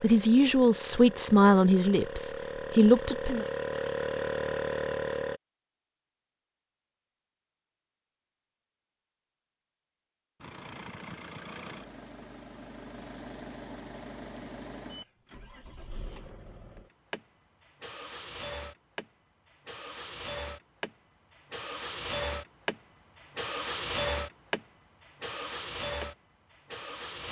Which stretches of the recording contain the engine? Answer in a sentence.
You can hear the engine from 0.0 to 5.4 s and from 10.4 to 27.2 s.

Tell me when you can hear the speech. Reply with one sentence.
You can hear the speech from 0.0 to 3.5 s.